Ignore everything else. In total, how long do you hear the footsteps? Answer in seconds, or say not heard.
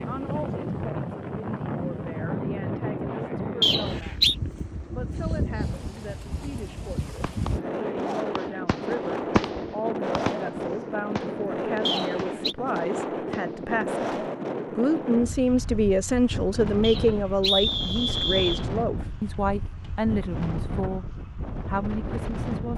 not heard.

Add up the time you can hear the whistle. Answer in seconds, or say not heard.
3 s.